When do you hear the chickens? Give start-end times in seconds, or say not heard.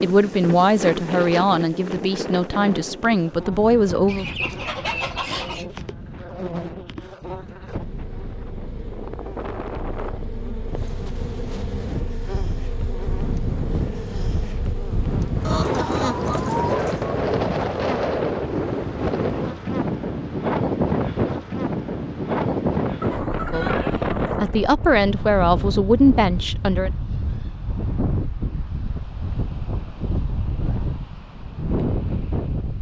4.0-5.7, 15.4-17.2, 23.0-24.5.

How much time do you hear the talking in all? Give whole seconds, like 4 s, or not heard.
8 s.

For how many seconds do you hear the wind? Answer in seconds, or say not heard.
33 s.